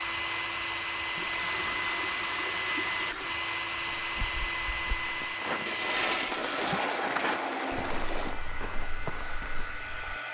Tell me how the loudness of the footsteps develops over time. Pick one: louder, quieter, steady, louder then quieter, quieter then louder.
louder then quieter.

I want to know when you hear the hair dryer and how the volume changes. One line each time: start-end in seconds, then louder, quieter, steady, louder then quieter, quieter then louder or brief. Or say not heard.
0.0-10.2 quieter.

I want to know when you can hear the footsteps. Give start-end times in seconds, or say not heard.
3.8-10.2.